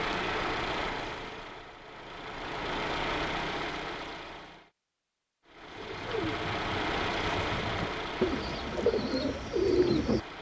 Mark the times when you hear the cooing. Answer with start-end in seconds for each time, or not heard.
5.8-10.2.